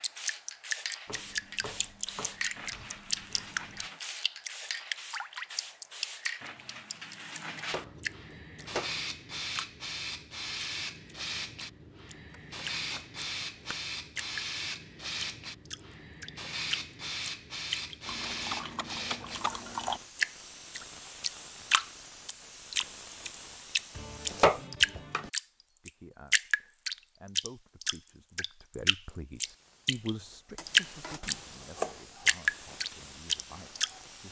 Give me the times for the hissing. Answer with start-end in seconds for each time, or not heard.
0.0-24.7, 29.4-34.2.